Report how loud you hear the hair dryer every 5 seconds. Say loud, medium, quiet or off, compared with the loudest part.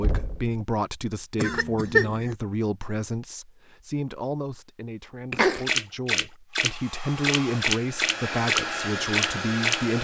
off, loud.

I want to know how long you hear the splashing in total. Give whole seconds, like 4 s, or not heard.
4 s.